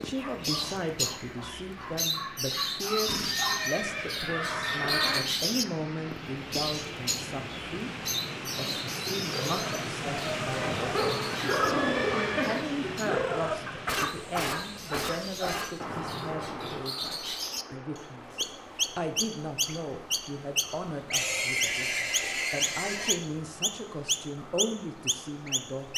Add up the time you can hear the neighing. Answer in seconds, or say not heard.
6 s.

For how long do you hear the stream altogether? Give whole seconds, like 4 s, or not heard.
26 s.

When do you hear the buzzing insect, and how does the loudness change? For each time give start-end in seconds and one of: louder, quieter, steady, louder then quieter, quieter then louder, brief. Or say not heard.
not heard.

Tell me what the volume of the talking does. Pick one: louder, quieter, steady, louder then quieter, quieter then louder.
steady.